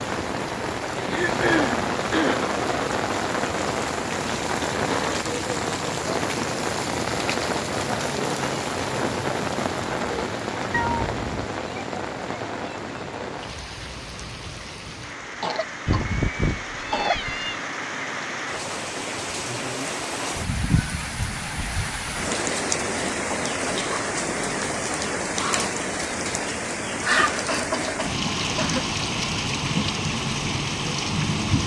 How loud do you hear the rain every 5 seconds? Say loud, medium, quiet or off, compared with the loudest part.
loud, loud, medium, medium, loud, loud, loud.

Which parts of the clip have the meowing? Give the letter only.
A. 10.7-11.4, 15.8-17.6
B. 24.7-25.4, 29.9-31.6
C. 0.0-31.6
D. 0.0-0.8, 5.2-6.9
A.